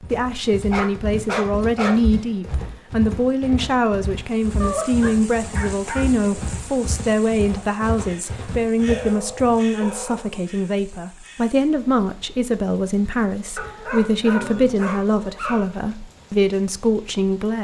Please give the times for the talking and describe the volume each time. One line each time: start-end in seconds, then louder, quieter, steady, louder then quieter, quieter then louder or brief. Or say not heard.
0.1-17.5 steady.